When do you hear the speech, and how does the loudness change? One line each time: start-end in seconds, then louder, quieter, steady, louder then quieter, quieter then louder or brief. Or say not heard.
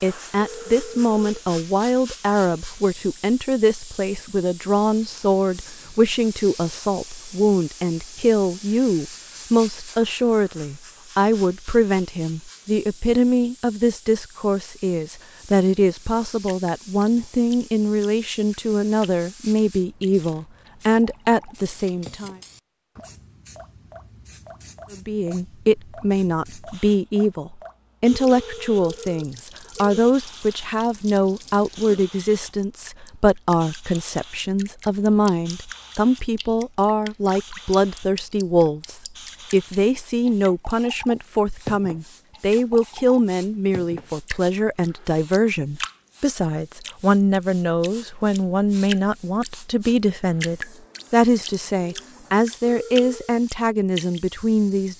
0.0-22.4 steady
24.9-54.9 steady.